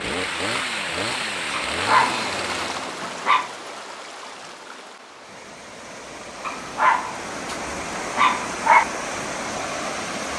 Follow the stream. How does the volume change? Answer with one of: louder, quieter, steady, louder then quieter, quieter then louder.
quieter then louder.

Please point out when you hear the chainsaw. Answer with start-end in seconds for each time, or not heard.
0.0-3.0.